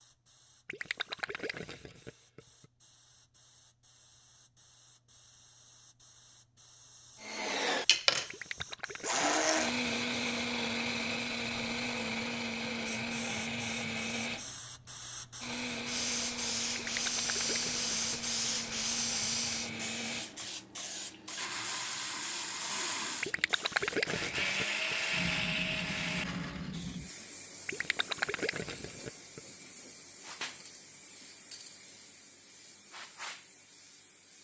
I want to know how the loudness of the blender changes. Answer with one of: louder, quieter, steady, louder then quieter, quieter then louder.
quieter then louder.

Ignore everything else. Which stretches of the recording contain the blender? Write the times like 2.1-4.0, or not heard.
7.2-26.8.